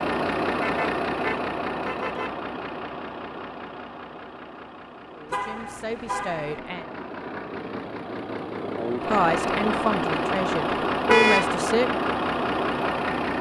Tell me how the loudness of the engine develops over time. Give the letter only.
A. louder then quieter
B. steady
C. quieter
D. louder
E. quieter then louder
E.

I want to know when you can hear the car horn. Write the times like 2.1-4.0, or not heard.
0.6-2.4, 5.3-6.6, 11.1-11.6.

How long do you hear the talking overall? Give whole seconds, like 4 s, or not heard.
5 s.